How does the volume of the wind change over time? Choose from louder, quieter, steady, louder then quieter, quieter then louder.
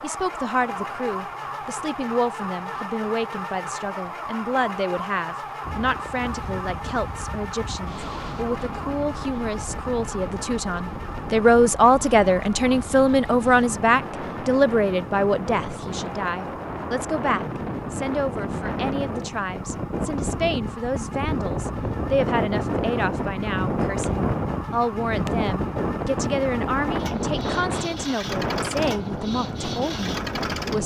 louder.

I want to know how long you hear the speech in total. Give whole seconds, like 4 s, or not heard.
31 s.